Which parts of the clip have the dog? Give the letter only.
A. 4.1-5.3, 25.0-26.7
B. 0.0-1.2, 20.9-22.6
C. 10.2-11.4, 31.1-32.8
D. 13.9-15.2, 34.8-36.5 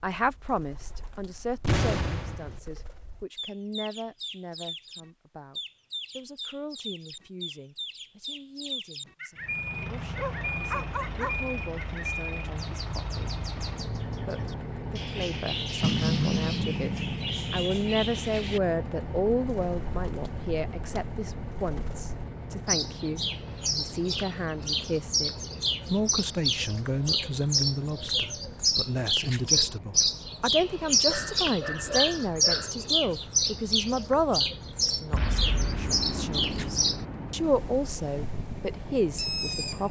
C.